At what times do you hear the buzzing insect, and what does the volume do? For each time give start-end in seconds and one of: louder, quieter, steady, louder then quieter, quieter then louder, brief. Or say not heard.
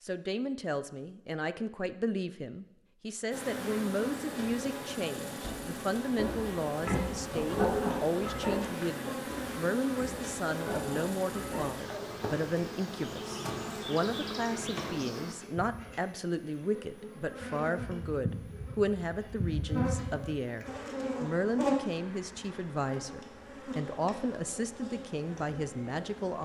3.3-26.4 steady.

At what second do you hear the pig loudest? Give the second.
8 s.